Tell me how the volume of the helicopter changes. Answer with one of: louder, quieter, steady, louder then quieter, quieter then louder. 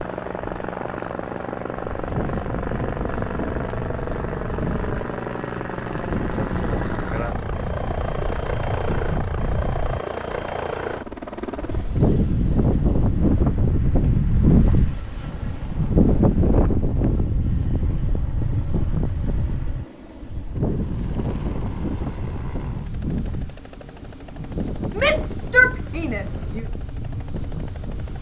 quieter.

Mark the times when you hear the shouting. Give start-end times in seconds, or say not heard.
24.9-26.6.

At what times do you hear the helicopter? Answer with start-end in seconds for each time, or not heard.
0.0-28.1.